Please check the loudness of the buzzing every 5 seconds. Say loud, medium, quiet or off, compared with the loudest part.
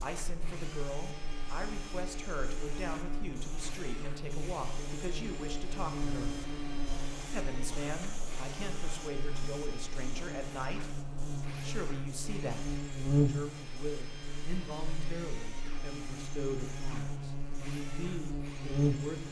medium, medium, loud, loud.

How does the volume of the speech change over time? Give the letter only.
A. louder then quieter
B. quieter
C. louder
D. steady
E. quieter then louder
D.